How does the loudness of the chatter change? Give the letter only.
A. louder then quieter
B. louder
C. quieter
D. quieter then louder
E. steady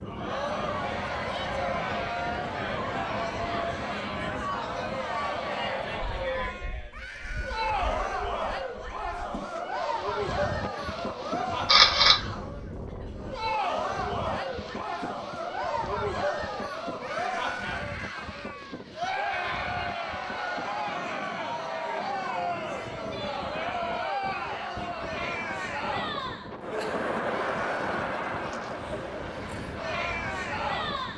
E.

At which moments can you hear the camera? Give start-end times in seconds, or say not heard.
11.5-12.3.